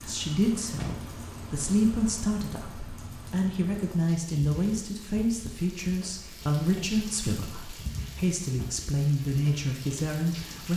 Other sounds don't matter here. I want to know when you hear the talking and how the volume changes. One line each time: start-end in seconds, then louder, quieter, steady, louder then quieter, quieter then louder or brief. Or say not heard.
0.0-10.7 steady.